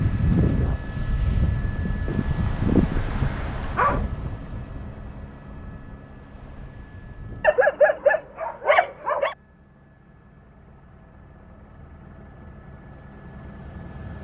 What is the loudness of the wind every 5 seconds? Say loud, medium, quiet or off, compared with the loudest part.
loud, quiet, off.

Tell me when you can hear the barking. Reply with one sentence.
You can hear the barking from 2.0 to 4.0 s and from 7.4 to 9.3 s.